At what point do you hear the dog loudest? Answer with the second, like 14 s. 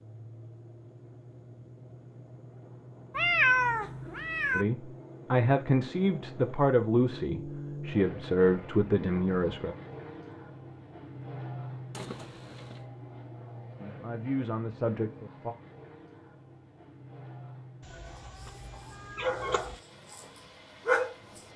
21 s.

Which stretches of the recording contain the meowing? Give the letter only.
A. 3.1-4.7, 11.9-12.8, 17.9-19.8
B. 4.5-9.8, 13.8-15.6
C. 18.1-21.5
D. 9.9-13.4
A.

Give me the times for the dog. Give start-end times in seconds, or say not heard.
18.1-21.5.